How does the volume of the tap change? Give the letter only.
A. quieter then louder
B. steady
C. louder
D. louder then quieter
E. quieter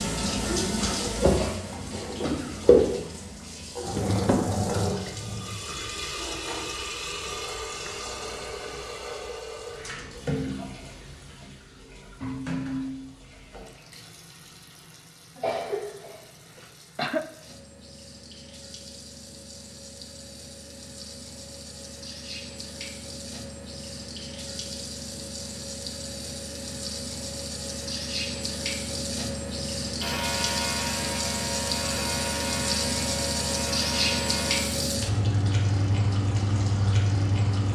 A.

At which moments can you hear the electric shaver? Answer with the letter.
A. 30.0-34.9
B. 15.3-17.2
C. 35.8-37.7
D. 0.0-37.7
A.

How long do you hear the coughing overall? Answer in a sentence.
The coughing can be heard for 2 seconds in total.